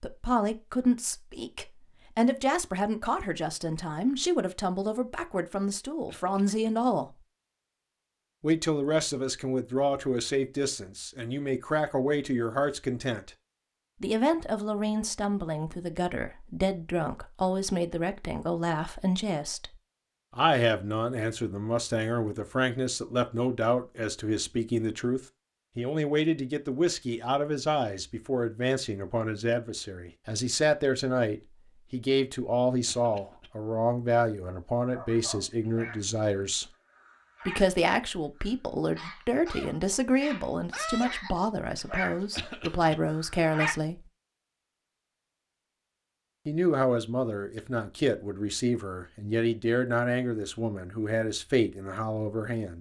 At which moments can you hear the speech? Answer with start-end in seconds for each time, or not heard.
0.0-7.2, 8.4-13.3, 14.0-19.8, 20.4-36.6, 37.5-44.0, 46.5-52.7.